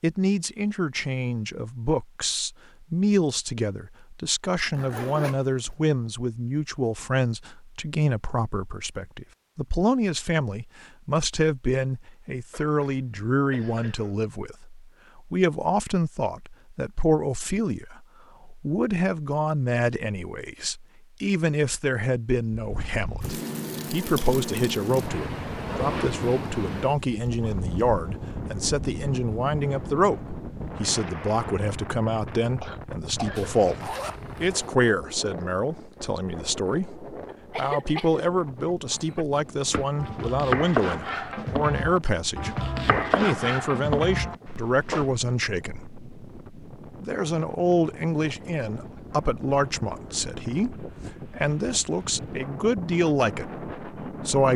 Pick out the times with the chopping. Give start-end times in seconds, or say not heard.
39.7-45.1.